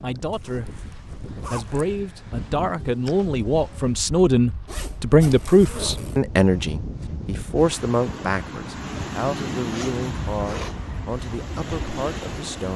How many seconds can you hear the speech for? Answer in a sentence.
The speech can be heard for 12 seconds in total.